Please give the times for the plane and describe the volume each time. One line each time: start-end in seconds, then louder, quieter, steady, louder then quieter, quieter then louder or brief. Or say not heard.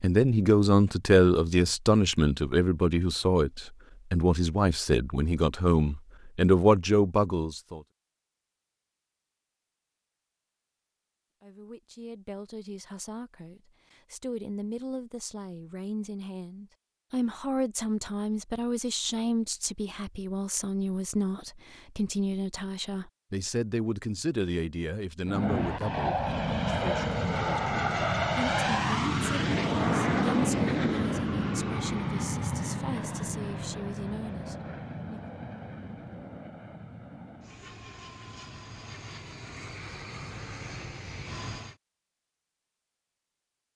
25.2-41.8 quieter.